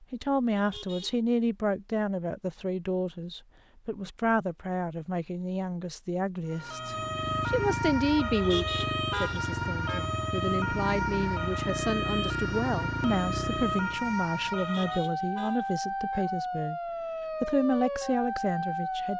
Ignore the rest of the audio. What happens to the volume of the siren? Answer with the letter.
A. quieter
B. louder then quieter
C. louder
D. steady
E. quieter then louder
D.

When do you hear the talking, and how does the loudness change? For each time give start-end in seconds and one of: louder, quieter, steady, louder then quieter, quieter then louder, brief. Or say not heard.
0.0-16.8 steady
17.4-19.1 brief.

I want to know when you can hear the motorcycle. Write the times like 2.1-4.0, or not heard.
6.8-14.1.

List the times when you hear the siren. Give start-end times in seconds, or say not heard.
6.5-19.1.